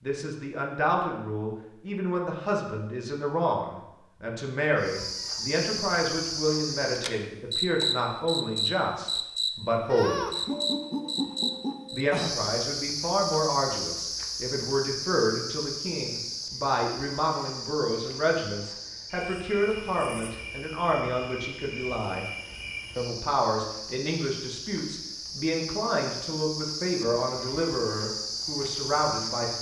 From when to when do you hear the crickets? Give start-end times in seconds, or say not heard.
4.8-29.5.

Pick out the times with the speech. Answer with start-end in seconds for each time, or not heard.
0.0-10.2, 11.9-22.2, 22.9-29.5.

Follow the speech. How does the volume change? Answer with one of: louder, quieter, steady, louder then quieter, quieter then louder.
steady.